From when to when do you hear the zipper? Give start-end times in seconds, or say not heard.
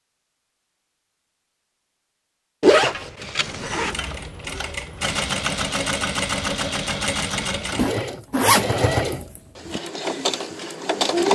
2.6-4.0, 7.8-9.8.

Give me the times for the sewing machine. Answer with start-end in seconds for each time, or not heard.
3.4-11.3.